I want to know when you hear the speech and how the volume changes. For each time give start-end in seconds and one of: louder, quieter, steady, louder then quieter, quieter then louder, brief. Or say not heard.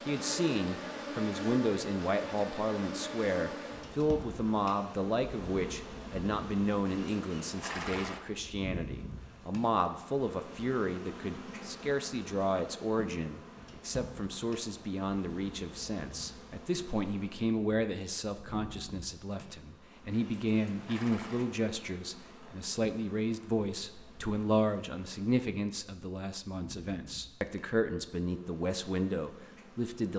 0.1-30.1 steady.